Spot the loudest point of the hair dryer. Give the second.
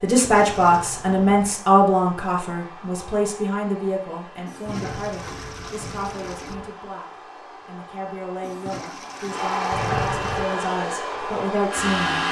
12 s.